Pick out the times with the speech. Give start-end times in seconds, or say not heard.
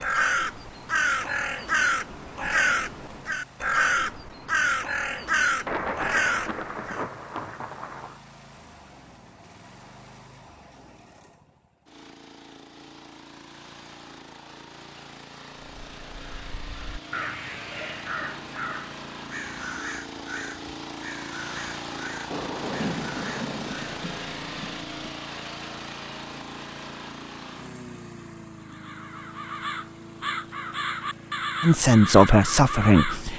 31.6-33.3.